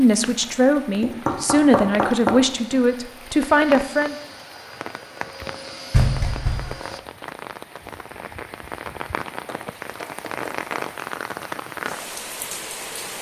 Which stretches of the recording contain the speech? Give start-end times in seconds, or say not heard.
0.0-4.2.